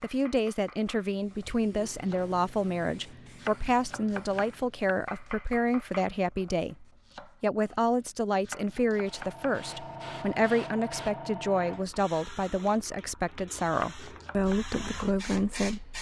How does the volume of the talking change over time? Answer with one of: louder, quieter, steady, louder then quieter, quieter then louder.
steady.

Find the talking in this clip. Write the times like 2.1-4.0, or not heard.
0.0-15.9.